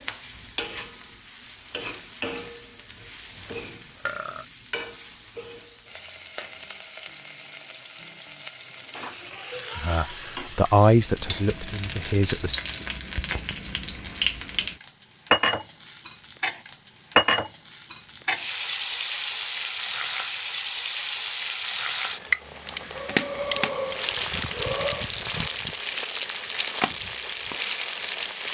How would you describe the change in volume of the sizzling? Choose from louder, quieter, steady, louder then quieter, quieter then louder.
louder.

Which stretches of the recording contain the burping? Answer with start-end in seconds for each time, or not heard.
3.4-4.5, 22.9-25.1.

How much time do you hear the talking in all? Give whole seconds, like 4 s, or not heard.
3 s.